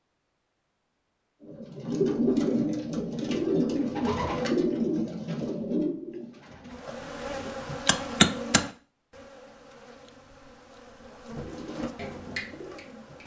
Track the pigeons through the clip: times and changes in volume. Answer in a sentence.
You can hear the pigeons from 1.4 to 7.5 s, getting quieter; and briefly from 11.3 to 13.2 s.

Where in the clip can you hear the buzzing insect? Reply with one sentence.
The buzzing insect can be heard from 6.7 to 13.2 s.